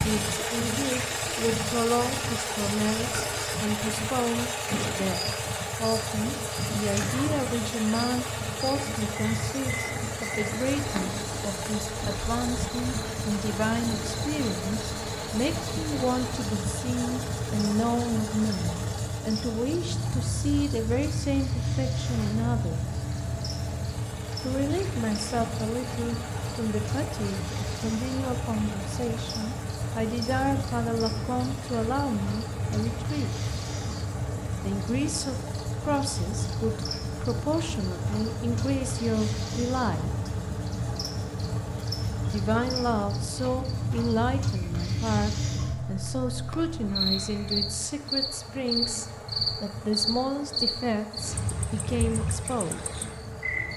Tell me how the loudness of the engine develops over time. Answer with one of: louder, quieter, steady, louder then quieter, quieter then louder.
quieter.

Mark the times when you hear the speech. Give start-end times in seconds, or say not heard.
0.0-23.0, 24.4-33.4, 34.6-40.3, 42.2-53.0.